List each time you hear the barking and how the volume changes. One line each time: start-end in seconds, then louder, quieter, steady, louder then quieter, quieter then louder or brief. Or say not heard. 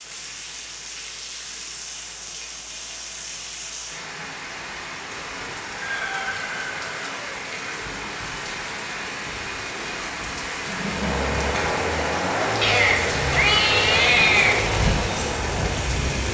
not heard.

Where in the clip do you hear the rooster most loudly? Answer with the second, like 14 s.
6 s.